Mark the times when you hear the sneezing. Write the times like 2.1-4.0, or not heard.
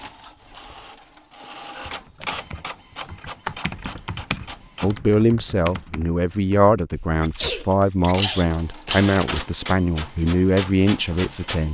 1.7-2.1, 7.2-9.1.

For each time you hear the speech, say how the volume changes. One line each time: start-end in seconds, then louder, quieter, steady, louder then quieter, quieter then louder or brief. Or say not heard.
4.8-11.6 steady.